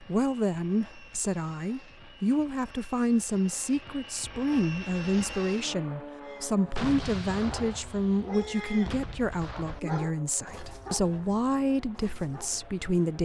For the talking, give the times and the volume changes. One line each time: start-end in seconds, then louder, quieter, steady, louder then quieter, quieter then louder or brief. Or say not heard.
0.0-13.2 steady.